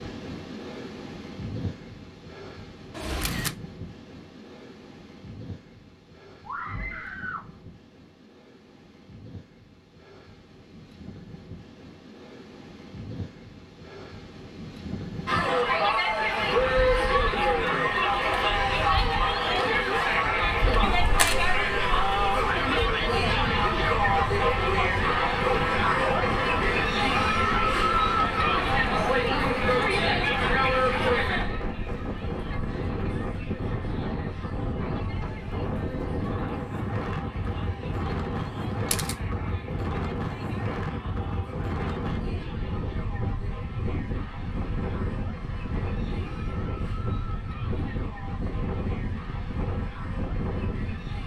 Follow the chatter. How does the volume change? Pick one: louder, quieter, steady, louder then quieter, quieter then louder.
quieter.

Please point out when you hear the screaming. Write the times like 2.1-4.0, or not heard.
6.5-7.5.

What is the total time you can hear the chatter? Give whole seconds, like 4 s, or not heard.
36 s.